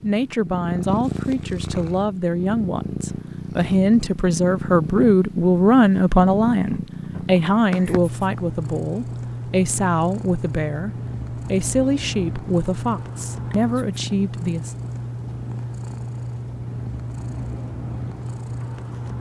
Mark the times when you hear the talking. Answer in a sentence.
The talking can be heard from 0.0 to 14.8 s.